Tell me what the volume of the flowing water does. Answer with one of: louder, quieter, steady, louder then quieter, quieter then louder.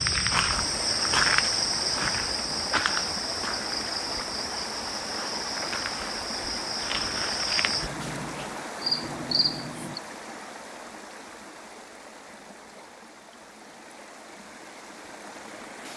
quieter.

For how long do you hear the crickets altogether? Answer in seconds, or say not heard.
10 s.